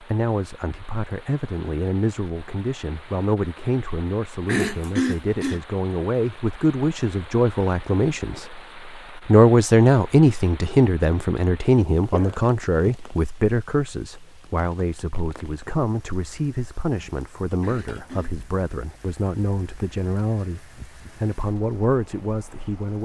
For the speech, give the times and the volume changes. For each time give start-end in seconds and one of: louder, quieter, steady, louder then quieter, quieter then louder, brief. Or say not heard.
0.0-23.0 louder then quieter.